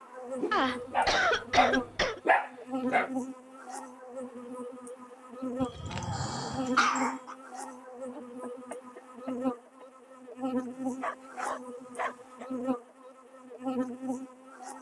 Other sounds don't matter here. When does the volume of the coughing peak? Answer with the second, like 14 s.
1 s.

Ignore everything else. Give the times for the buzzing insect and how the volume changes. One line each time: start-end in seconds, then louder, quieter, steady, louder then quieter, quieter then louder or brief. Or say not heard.
0.0-14.7 steady.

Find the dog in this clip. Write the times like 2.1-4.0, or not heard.
0.4-3.1, 5.6-7.3, 10.8-12.5.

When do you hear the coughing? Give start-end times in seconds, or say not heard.
0.5-2.2, 8.1-9.8.